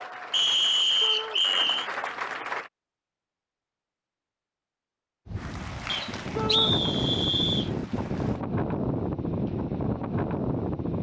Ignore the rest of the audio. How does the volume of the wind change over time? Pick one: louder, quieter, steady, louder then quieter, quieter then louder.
louder.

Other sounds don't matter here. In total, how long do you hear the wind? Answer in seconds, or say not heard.
6 s.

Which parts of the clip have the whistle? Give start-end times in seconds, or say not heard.
0.3-1.9, 5.8-7.7.